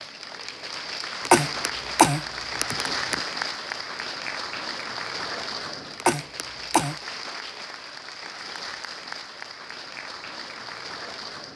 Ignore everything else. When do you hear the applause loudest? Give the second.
3 s.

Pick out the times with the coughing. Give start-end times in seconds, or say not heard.
1.2-3.2, 6.0-7.0.